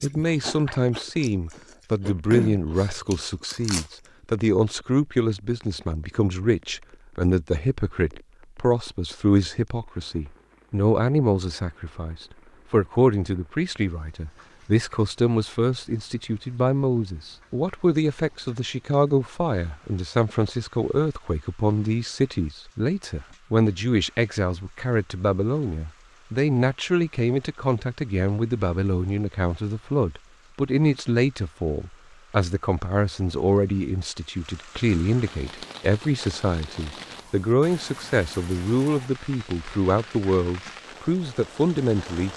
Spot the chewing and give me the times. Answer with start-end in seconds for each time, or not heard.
0.0-4.0.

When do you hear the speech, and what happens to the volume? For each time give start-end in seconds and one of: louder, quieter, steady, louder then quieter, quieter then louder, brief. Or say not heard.
0.0-42.3 steady.